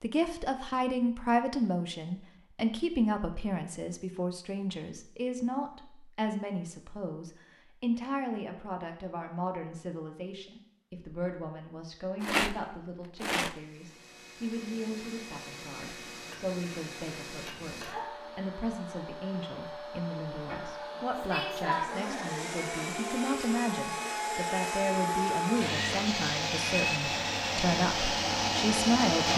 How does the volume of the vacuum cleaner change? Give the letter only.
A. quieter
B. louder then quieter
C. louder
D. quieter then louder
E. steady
C.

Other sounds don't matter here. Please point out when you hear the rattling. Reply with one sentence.
The rattling can be heard from 12.2 to 13.6 s.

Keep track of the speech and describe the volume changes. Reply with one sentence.
The volume of the speech goes down, then up.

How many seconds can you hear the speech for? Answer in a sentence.
You can hear the speech for 29 seconds altogether.